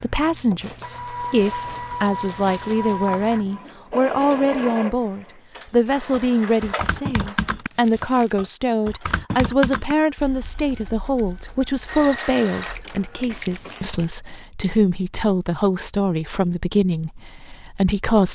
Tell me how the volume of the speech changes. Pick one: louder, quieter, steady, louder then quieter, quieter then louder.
steady.